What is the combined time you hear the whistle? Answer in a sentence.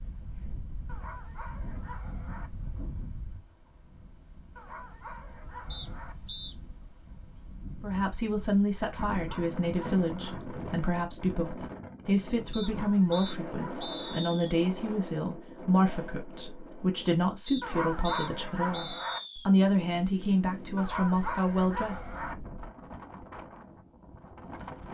The whistle can be heard for 5 seconds in total.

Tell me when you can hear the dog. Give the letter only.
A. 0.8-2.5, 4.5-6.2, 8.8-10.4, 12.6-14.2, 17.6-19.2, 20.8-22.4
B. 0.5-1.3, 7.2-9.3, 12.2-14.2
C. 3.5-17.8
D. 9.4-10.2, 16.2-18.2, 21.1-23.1
A.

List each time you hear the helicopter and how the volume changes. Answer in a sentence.
The helicopter can't be heard in this clip.